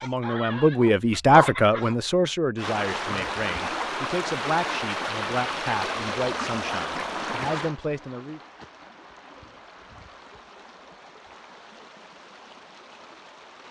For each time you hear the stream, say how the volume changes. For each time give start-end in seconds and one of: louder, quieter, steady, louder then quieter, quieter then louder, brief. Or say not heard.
2.5-13.6 quieter.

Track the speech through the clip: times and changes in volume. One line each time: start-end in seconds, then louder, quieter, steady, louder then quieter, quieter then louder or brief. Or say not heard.
0.0-8.4 quieter.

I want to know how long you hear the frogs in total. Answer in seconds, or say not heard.
not heard.